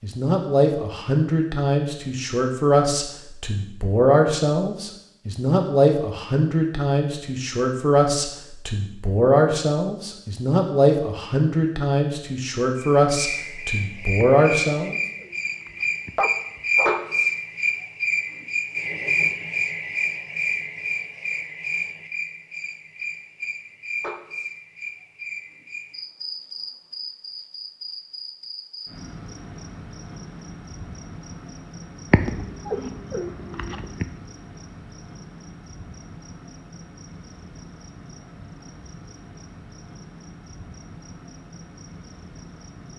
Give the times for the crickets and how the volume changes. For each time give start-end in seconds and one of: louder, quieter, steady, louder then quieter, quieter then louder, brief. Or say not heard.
12.8-42.9 quieter.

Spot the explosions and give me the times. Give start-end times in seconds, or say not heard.
not heard.